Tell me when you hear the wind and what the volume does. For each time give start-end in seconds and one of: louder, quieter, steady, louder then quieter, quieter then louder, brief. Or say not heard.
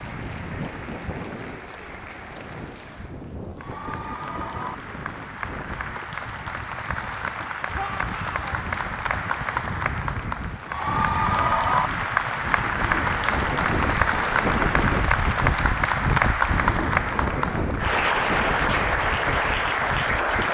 0.0-20.5 louder.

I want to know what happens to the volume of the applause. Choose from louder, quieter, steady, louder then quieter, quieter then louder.
louder.